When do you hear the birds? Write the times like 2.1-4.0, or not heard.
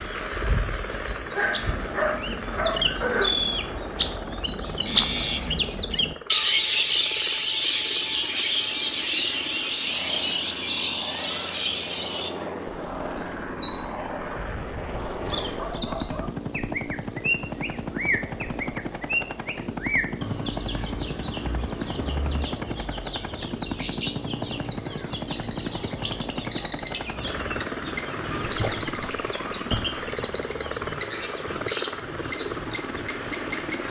0.0-33.8.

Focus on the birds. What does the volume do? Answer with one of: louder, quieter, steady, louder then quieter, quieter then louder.
quieter.